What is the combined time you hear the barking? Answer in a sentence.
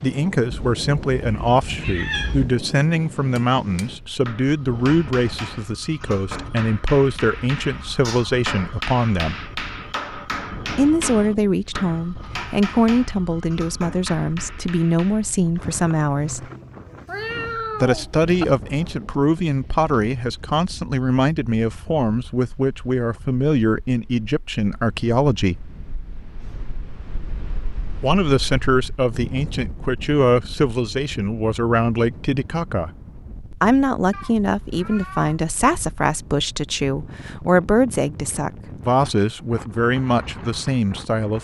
The barking can't be heard in this clip.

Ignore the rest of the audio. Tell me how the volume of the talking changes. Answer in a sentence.
The loudness of the talking stays about the same.